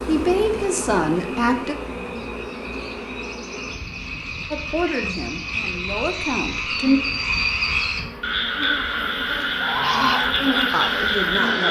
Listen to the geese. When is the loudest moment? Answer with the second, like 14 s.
10 s.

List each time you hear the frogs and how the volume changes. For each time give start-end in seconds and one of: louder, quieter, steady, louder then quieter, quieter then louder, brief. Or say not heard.
0.0-11.6 louder.